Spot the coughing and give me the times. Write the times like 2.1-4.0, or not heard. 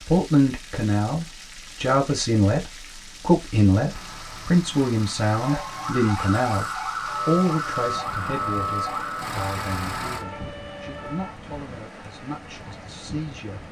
not heard.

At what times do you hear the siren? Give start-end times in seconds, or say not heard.
5.3-11.3.